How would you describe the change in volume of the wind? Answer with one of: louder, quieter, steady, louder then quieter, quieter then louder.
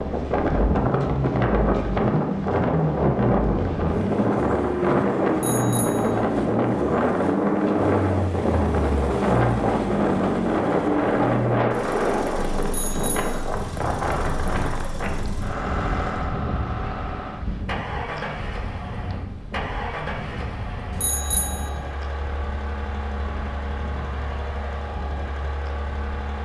quieter.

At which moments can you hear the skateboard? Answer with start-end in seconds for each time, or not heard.
not heard.